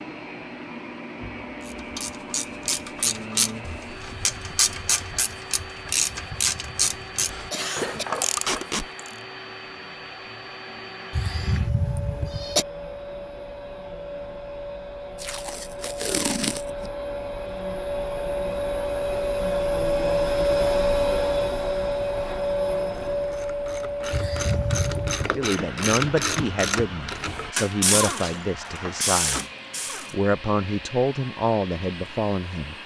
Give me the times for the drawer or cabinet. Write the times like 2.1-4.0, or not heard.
not heard.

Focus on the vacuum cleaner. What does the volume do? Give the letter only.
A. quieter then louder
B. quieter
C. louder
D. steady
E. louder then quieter
E.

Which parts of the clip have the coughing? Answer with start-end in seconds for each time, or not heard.
6.3-8.1, 11.1-12.7, 24.1-25.4.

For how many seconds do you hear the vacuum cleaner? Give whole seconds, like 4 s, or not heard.
33 s.